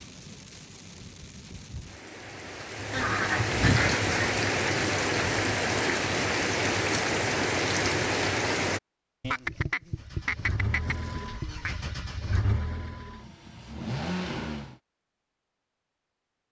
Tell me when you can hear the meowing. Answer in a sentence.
The meowing can't be heard in this clip.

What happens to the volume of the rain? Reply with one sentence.
The loudness of the rain goes up.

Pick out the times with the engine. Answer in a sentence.
The engine can be heard from 9.9 to 14.8 s.